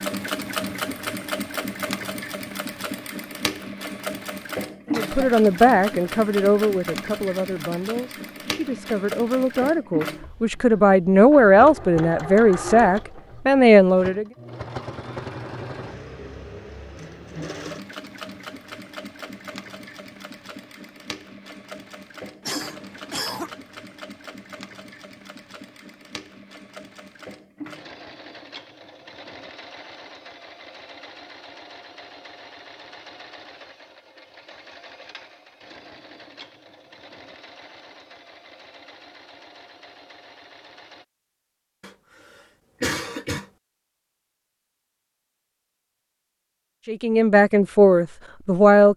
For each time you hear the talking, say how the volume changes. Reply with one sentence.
You can hear the talking from 4.9 to 14.2 s, getting quieter then louder; and briefly from 46.9 to 48.9 s.